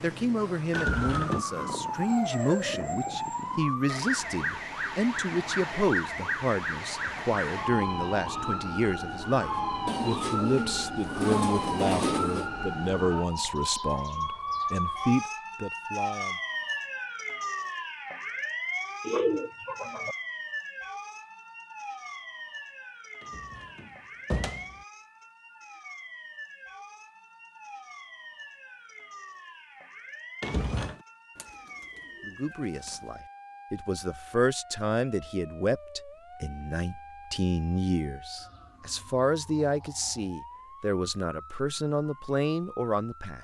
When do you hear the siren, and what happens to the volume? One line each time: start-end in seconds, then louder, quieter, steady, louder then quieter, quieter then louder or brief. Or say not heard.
0.0-43.4 quieter.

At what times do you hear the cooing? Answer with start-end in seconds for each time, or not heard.
9.8-12.5, 19.0-20.1, 31.4-33.0.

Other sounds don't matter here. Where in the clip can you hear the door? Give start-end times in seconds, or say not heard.
0.8-1.4, 23.2-24.8, 30.4-31.0.